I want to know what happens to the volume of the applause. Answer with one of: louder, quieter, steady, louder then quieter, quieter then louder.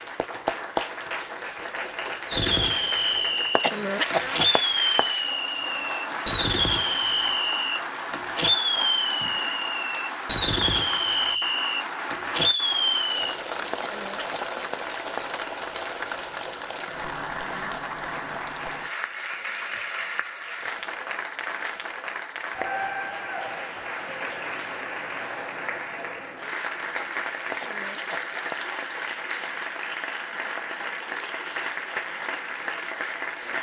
steady.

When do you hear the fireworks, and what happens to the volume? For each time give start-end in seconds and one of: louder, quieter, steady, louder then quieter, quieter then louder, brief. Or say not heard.
2.2-13.3 steady.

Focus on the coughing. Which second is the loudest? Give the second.
4 s.